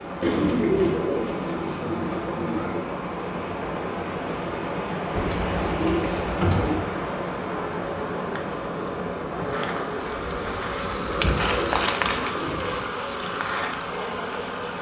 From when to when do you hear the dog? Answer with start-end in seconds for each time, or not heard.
not heard.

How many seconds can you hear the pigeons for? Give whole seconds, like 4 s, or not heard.
6 s.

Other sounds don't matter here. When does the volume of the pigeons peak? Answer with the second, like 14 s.
1 s.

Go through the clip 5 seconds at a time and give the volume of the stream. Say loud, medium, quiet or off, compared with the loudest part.
loud, loud, medium.